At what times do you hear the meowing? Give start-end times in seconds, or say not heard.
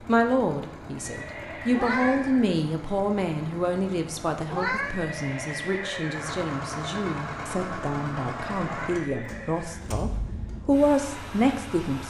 1.7-2.3, 4.5-5.0, 8.7-9.2.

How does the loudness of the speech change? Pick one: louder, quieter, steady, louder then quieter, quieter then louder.
quieter then louder.